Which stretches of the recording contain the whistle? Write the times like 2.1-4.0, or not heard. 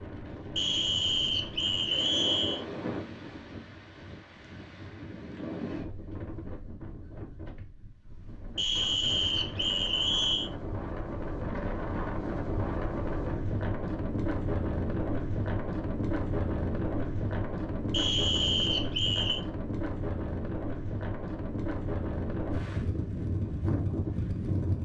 0.6-2.6, 8.6-10.5, 17.9-19.4.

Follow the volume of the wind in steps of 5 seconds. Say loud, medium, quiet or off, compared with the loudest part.
medium, medium, loud, loud, loud.